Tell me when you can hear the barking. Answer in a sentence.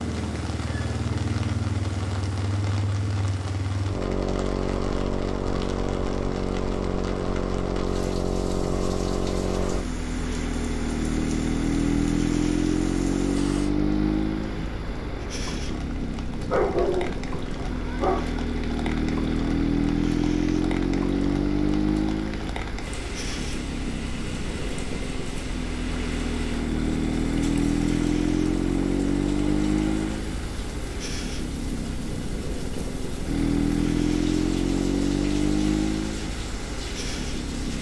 You can hear the barking from 16.4 to 18.4 s.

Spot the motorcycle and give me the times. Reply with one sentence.
You can hear the motorcycle from 0.0 to 37.7 s.